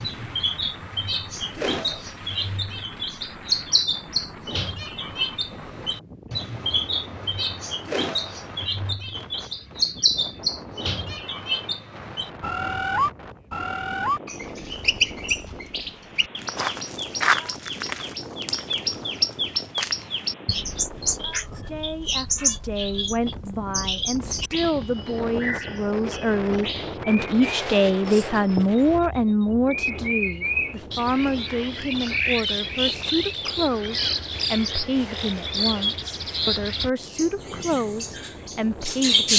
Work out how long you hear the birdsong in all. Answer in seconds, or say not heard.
39 s.